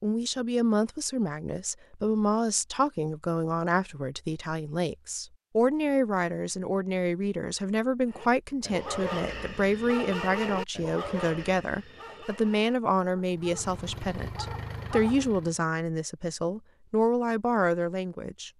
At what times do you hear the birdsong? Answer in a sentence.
The birdsong can't be heard in this clip.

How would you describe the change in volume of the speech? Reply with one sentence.
The loudness of the speech stays about the same.